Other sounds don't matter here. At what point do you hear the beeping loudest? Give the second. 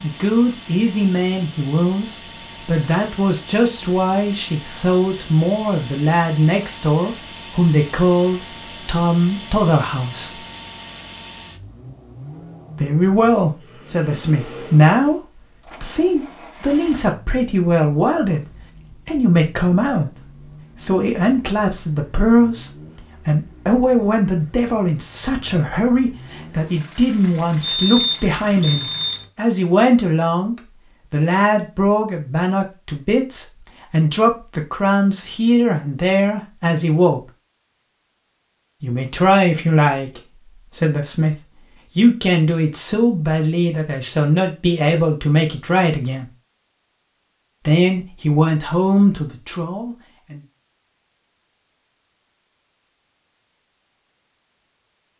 28 s.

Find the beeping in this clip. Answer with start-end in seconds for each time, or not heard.
27.6-29.2.